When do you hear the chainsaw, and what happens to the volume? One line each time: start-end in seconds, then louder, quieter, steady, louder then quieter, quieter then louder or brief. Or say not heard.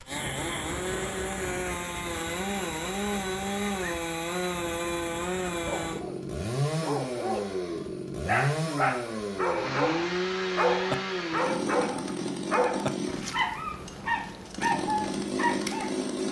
0.0-16.2 steady.